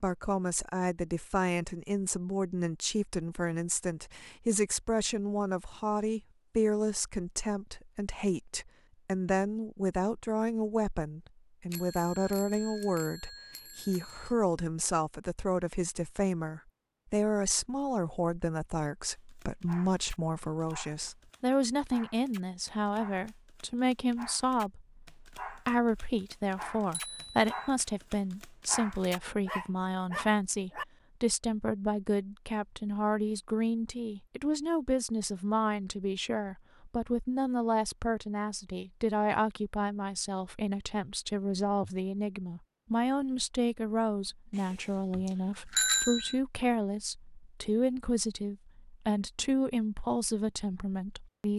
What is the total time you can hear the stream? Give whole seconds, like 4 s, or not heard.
not heard.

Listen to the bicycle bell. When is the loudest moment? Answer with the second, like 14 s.
46 s.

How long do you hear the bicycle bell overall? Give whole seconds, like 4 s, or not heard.
5 s.